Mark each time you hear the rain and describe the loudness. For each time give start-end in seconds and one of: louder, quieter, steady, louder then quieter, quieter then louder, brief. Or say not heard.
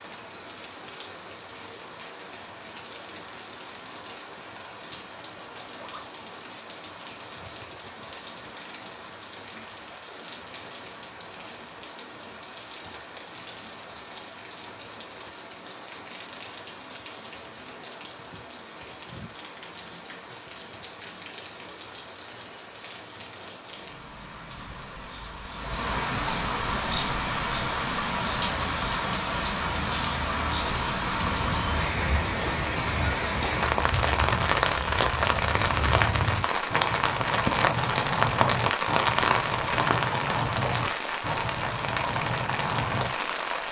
0.0-43.6 louder.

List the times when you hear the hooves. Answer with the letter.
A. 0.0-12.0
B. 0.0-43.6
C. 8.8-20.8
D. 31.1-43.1
D.